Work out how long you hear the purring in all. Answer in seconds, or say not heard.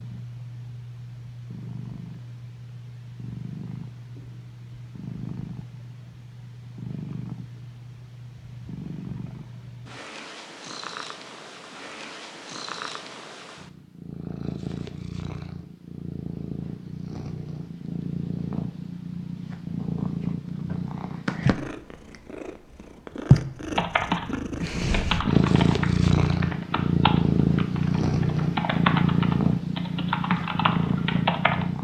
32 s.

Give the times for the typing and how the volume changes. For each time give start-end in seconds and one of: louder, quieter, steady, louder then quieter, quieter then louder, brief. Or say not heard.
23.7-31.6 quieter then louder.